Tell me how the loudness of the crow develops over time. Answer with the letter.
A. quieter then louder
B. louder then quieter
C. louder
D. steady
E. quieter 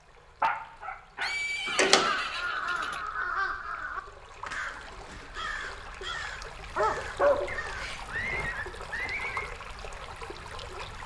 E.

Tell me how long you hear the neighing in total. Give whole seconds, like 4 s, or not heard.
4 s.